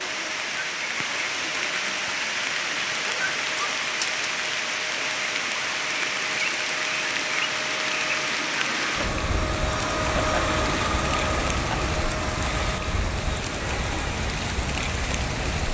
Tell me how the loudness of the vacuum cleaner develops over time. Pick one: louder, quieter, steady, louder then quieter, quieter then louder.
louder then quieter.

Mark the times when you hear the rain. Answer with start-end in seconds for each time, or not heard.
0.0-15.6.